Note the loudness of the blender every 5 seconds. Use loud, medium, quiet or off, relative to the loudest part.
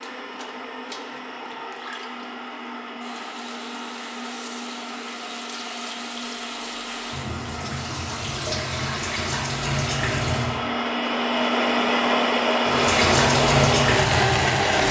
quiet, quiet, loud.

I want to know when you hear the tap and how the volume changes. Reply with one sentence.
The tap can be heard from 0.0 to 10.6 s, getting louder; and briefly from 12.7 to 14.8 s.